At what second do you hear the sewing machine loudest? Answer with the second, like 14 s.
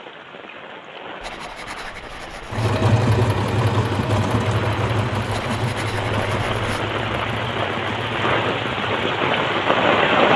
3 s.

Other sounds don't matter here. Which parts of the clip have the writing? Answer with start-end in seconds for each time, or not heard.
1.2-2.8, 5.3-6.9.